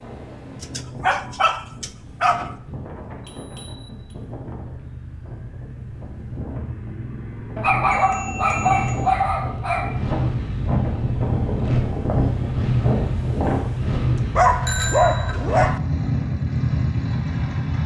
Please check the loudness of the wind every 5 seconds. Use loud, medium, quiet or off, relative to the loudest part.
quiet, medium, loud, off.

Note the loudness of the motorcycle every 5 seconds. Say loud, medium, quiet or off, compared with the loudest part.
quiet, medium, loud, loud.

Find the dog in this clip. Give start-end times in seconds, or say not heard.
0.6-2.5, 7.5-10.0, 14.3-15.8.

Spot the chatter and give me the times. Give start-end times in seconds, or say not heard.
not heard.